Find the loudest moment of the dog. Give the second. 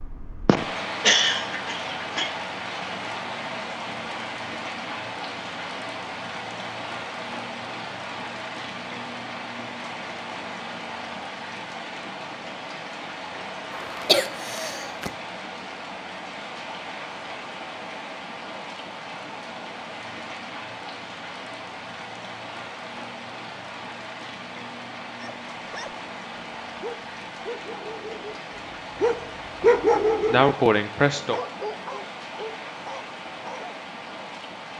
30 s.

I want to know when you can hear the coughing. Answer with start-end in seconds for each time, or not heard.
0.5-2.3, 13.7-15.1, 30.3-31.4.